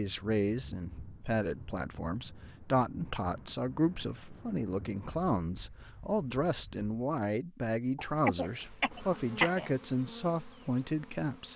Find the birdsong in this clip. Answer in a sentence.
The birdsong can't be heard in this clip.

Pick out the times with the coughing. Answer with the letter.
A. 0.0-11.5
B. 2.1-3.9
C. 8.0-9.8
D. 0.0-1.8
C.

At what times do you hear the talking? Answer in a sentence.
The talking can be heard from 0.0 to 11.5 s.